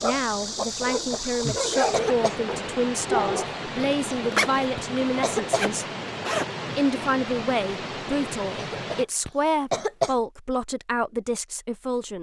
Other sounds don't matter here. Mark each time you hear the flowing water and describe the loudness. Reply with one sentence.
The flowing water can be heard from 0.0 to 9.1 s, at a steady volume.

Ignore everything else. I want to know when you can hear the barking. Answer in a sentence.
You can hear the barking from 0.0 to 3.5 s.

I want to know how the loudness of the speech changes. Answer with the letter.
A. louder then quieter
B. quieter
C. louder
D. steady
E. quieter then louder
D.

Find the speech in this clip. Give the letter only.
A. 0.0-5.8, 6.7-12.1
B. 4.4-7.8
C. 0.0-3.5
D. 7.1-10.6
A.